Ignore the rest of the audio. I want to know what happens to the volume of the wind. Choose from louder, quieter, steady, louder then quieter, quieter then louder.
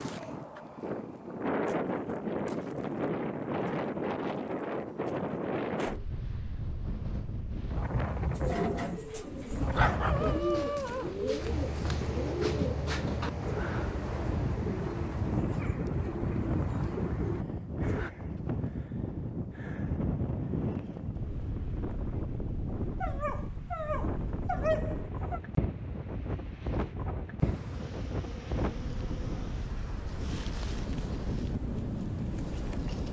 steady.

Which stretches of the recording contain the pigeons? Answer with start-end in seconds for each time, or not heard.
8.3-18.1.